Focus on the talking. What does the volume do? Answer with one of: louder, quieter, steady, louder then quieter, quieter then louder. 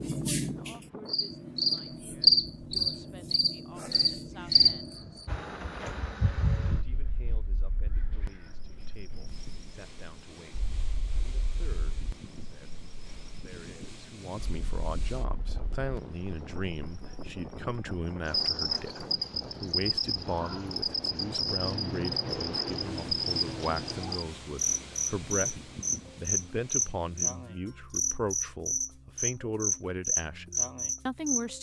louder.